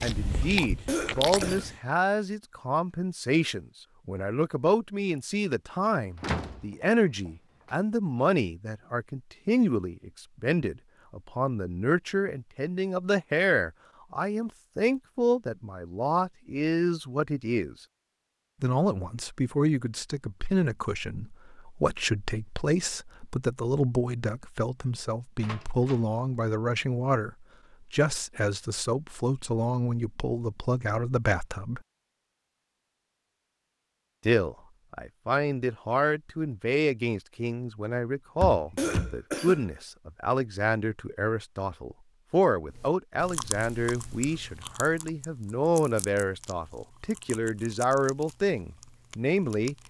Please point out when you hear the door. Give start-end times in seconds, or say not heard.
6.2-6.7, 7.2-7.8, 25.4-26.1, 38.4-39.1.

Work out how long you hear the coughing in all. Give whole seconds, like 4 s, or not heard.
2 s.